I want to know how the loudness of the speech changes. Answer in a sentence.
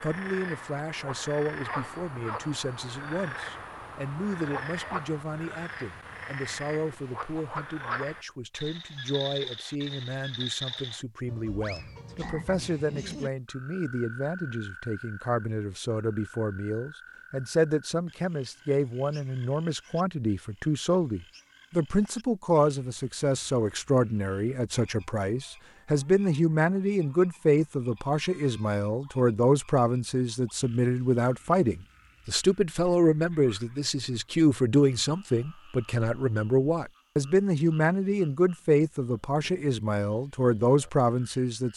The volume of the speech goes up.